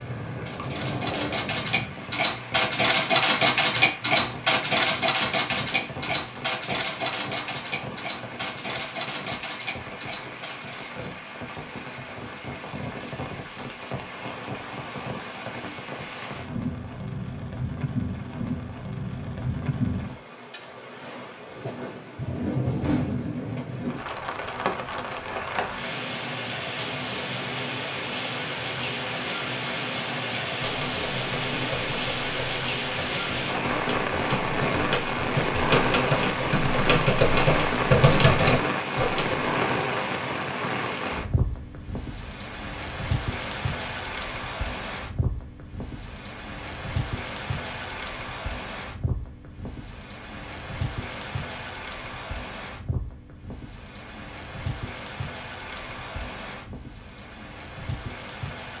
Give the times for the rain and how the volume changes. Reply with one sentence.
You can hear the rain from 0.0 to 58.7 s, getting louder then quieter.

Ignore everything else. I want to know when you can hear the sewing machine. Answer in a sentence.
You can hear the sewing machine from 0.0 to 1.7 s.